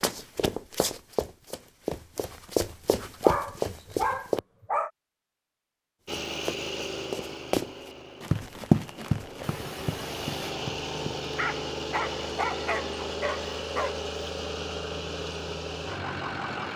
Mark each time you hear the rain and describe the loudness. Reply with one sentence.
You can't hear the rain here.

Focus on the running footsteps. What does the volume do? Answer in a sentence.
The loudness of the running footsteps goes up, then down.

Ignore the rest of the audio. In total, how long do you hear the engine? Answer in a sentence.
You can hear the engine for 11 seconds altogether.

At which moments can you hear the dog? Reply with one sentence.
The dog can be heard from 3.2 to 4.9 s and from 11.3 to 14.0 s.